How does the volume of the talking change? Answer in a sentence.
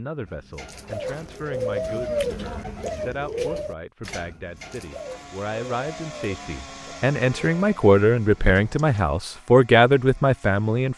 The loudness of the talking goes up.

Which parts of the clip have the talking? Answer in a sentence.
The talking can be heard from 0.0 to 10.9 s.